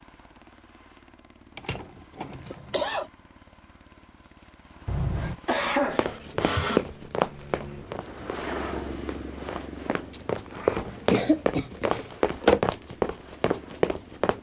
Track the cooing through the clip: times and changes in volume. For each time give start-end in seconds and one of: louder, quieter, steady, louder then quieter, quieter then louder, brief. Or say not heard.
not heard.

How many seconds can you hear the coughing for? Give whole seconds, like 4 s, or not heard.
6 s.